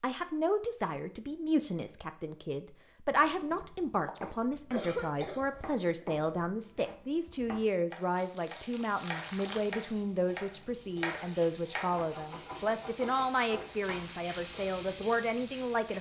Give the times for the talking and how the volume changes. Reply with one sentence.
The talking can be heard from 0.0 to 15.9 s, at a steady volume.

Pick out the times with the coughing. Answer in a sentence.
The coughing can be heard from 4.7 to 6.0 s.